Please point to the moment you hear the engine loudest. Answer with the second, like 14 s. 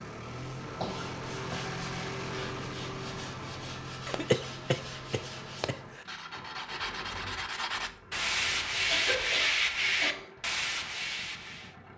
2 s.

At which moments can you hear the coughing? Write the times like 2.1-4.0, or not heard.
0.8-1.8, 4.0-6.0, 8.8-10.3.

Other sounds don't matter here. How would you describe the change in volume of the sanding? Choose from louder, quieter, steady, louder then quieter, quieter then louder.
louder.